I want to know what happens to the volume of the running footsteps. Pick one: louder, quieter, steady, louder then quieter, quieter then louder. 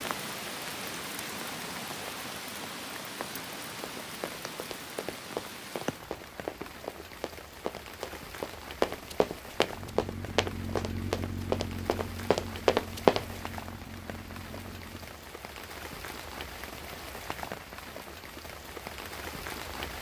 louder.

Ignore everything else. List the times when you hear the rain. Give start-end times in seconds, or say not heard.
0.0-19.9.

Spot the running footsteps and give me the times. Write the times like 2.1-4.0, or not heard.
3.8-13.2.